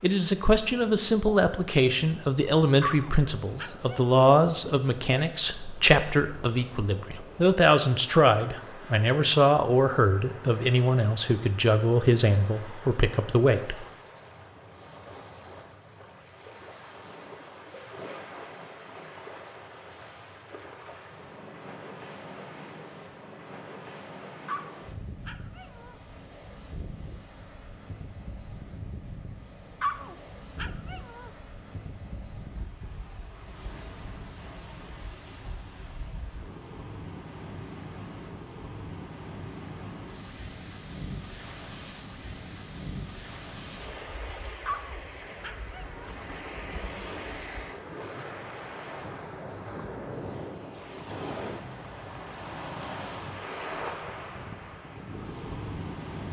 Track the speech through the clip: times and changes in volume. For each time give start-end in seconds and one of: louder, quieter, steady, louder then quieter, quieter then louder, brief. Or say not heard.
0.0-13.8 steady.